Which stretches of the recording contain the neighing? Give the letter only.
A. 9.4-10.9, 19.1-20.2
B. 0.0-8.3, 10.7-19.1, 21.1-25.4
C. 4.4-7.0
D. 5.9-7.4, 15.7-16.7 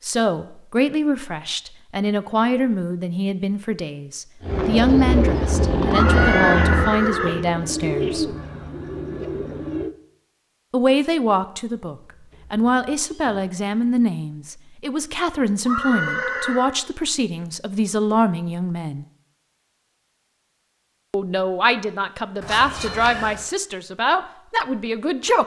D.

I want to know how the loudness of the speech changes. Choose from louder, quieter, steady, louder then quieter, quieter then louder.
steady.